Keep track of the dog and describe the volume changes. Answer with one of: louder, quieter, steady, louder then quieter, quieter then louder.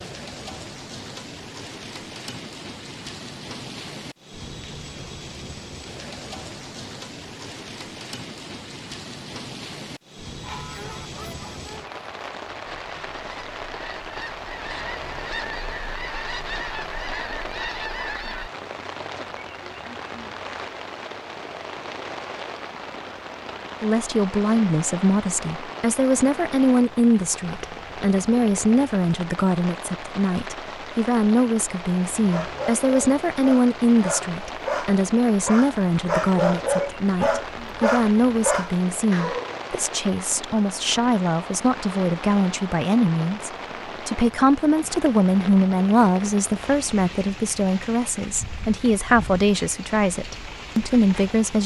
louder.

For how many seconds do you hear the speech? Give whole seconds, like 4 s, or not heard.
28 s.